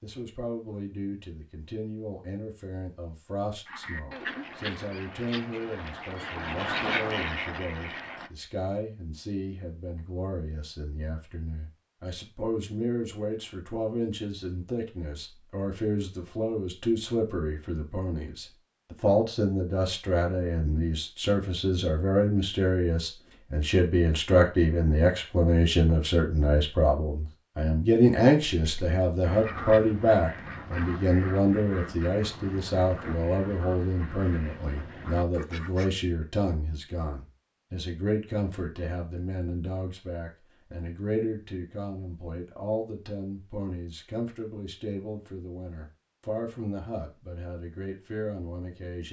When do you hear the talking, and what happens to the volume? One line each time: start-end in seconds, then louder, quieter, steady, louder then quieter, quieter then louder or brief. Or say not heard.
0.0-49.0 louder then quieter.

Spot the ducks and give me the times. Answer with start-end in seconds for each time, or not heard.
3.6-8.3, 28.6-35.9.